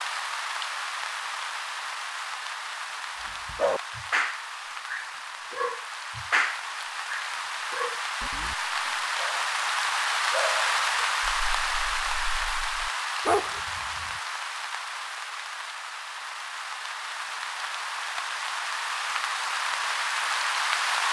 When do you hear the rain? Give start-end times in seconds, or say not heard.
0.0-21.0.